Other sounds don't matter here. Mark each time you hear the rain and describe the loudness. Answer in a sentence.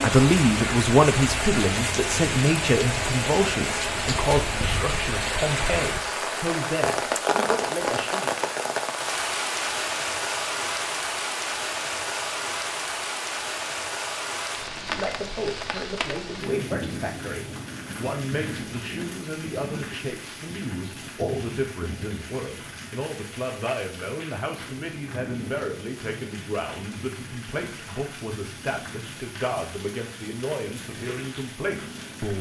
You can hear the rain from 0.0 to 32.3 s, getting quieter.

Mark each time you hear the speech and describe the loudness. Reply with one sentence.
You can hear the speech from 0.0 to 8.3 s, getting quieter; and from 14.8 to 32.3 s, at a steady volume.